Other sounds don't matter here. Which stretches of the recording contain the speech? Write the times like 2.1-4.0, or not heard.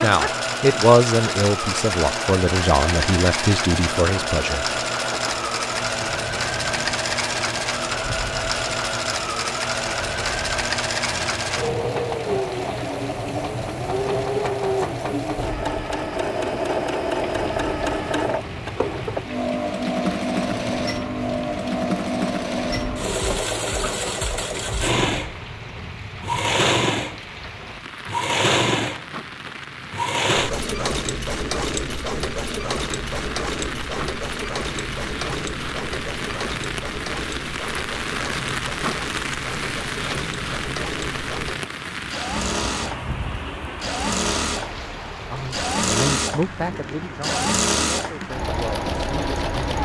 0.0-4.7, 45.3-49.8.